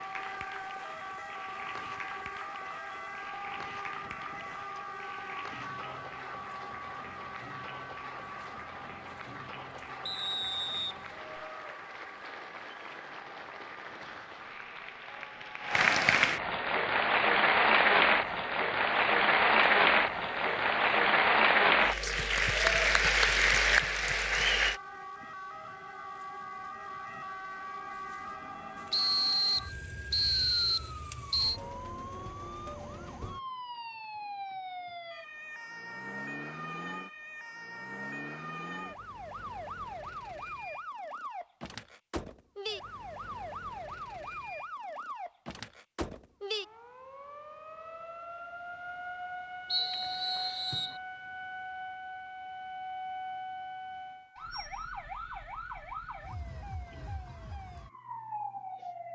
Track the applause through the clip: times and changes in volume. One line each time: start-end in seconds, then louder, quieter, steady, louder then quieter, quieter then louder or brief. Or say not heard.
0.0-24.8 louder.